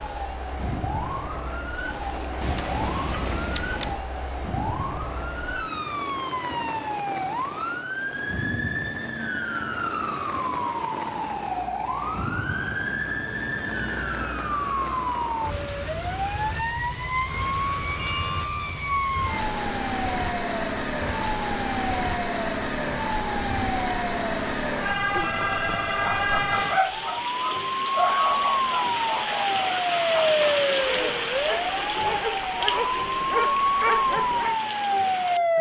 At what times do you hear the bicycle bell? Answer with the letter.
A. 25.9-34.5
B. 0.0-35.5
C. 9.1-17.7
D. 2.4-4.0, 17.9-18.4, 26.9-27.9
D.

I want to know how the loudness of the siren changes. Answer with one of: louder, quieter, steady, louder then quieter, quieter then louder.
louder.